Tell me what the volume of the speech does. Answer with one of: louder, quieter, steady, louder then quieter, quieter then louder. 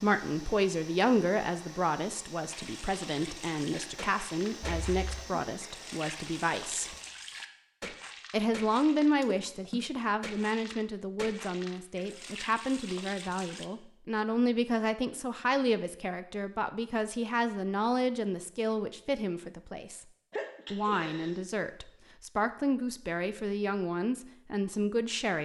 steady.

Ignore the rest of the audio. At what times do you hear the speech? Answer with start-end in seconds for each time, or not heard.
0.0-7.0, 8.3-20.1, 20.7-25.3.